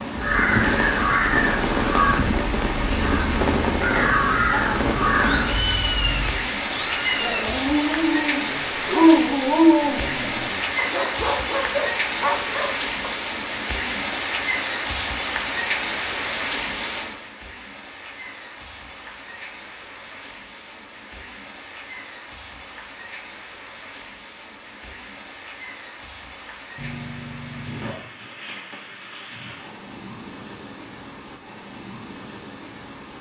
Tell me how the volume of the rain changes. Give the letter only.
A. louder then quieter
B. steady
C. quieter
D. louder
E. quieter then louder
C.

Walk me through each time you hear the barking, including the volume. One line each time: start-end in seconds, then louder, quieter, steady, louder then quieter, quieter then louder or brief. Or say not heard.
7.2-13.2 louder then quieter.